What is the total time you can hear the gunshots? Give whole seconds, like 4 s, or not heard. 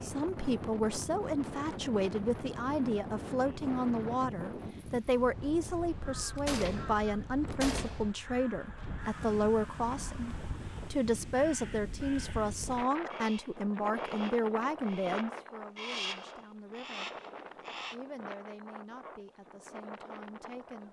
2 s.